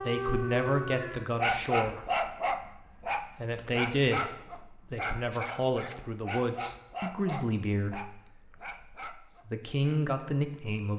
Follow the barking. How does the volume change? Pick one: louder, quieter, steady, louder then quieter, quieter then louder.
quieter.